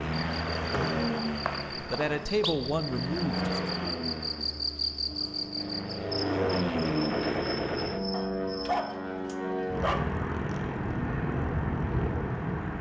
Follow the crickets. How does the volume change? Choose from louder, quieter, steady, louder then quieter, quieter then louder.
louder then quieter.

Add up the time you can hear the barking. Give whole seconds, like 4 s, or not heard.
2 s.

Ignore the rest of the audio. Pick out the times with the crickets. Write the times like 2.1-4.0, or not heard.
0.1-8.8.